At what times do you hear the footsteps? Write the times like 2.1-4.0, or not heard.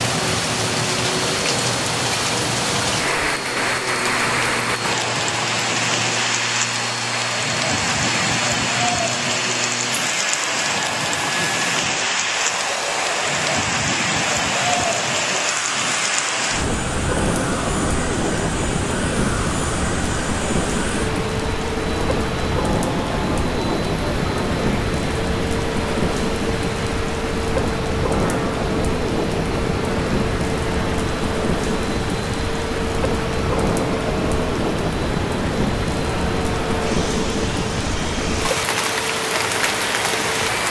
not heard.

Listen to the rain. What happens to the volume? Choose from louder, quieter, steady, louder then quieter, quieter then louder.
steady.